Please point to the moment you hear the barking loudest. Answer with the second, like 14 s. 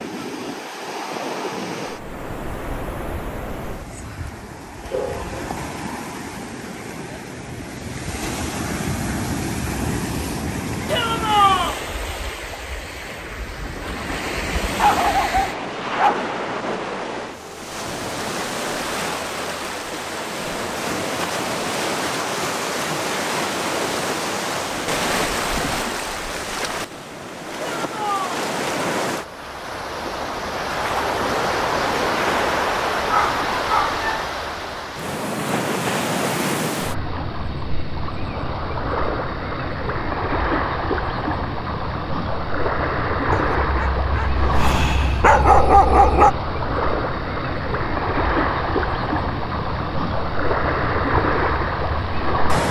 46 s.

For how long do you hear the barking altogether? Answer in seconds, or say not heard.
7 s.